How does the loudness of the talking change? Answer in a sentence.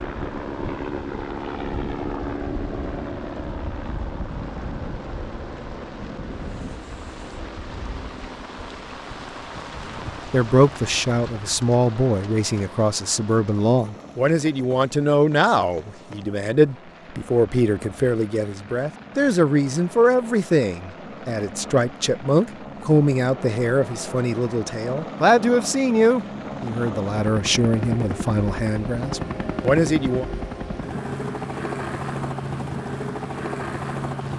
The volume of the talking stays about the same.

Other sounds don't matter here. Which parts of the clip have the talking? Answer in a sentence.
You can hear the talking from 10.2 to 30.2 s.